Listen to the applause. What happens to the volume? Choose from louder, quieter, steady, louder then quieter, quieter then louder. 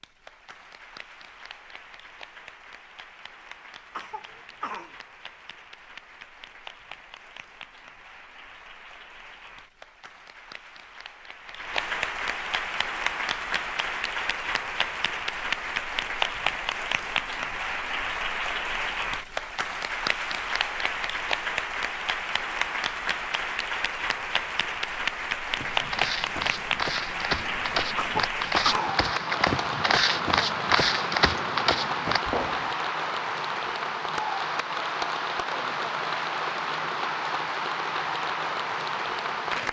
louder.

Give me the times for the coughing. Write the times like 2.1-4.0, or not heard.
3.9-5.0, 27.9-29.0.